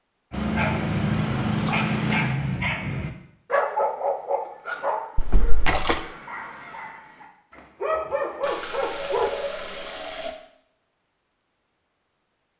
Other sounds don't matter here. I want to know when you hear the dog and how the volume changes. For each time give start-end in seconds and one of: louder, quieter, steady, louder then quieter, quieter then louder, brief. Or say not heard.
0.3-9.3 quieter then louder.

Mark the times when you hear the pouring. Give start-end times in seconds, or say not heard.
0.3-2.4, 5.2-6.0, 8.4-10.3.